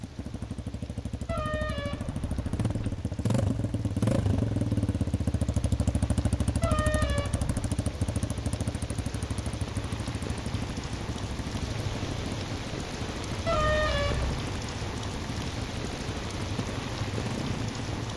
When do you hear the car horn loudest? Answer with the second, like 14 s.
14 s.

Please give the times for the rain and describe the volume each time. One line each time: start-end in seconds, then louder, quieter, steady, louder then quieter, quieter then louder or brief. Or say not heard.
0.0-18.1 louder.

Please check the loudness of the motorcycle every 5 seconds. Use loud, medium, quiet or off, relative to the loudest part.
loud, loud, medium, medium.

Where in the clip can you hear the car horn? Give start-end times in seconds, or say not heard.
1.2-2.8, 6.6-7.7, 13.4-14.4.